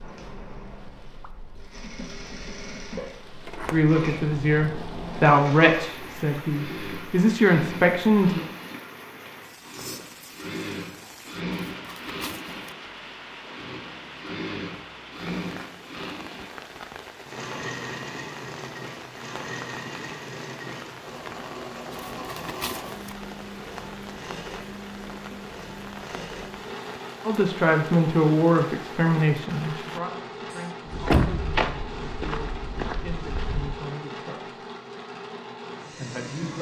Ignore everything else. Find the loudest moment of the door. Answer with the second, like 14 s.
31 s.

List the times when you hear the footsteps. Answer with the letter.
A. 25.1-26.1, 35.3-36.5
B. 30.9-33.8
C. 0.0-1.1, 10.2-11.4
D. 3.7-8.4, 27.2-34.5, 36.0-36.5
B.